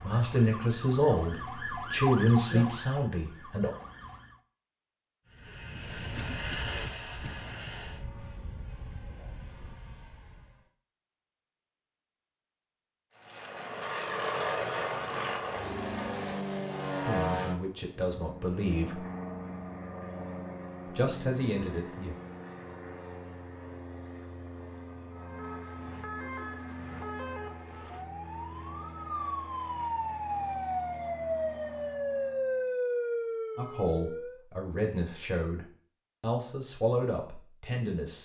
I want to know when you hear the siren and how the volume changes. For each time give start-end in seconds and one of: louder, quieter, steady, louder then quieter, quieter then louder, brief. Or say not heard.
0.0-4.3 louder then quieter
25.1-34.4 louder.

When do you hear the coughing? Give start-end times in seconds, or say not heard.
6.2-7.3.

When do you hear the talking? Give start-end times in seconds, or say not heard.
0.0-3.7, 17.1-19.0, 20.9-22.1, 33.5-38.1.